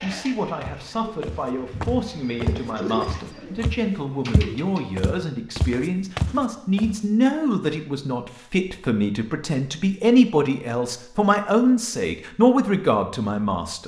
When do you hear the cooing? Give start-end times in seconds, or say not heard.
0.0-5.0.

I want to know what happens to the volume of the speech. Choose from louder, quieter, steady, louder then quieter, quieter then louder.
louder.